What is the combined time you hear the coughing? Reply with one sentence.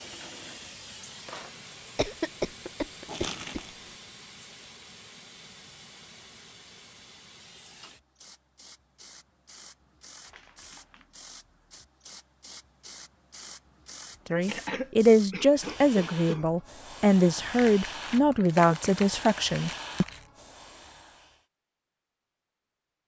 You can hear the coughing for 4 seconds altogether.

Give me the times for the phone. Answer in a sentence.
You can't hear the phone here.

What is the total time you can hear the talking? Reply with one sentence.
You can hear the talking for 6 seconds altogether.